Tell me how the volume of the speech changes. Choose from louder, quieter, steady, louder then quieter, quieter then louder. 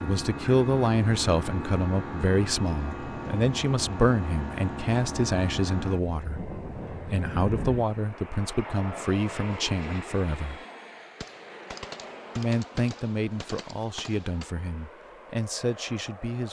quieter.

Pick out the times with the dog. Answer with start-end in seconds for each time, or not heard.
not heard.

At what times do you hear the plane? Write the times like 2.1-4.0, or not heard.
0.0-16.4.